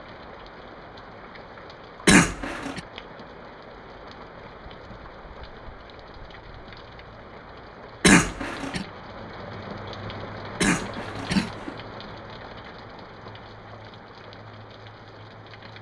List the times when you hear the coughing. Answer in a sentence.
You can hear the coughing from 2.0 to 2.8 s, from 8.0 to 8.8 s and from 10.6 to 11.8 s.